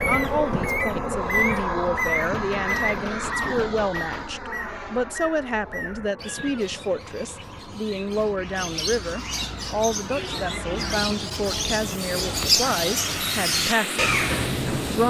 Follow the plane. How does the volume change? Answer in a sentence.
The loudness of the plane goes down, then up.